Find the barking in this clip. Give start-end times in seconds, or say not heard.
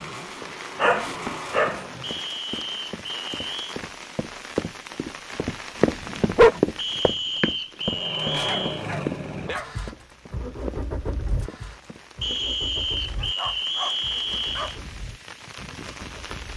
0.8-2.0, 6.0-6.6, 8.4-9.7, 13.2-14.8.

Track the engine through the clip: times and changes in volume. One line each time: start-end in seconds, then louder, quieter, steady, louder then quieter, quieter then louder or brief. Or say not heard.
0.0-2.2 brief
7.8-16.5 quieter.